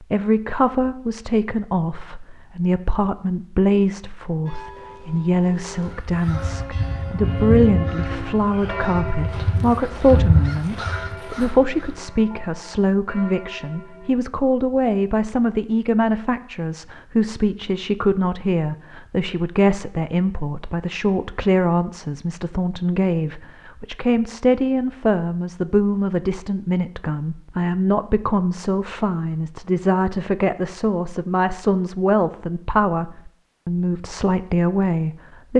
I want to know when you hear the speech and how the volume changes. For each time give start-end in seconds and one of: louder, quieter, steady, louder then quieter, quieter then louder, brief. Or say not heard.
0.0-35.5 steady.